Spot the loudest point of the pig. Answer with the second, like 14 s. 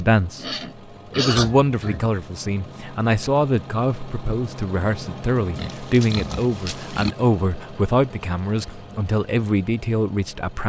1 s.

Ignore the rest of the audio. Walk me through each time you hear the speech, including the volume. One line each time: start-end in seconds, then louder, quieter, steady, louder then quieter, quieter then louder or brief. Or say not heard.
0.0-0.5 brief
1.1-10.6 steady.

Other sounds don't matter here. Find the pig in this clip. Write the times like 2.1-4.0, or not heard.
0.3-2.1, 5.5-7.2.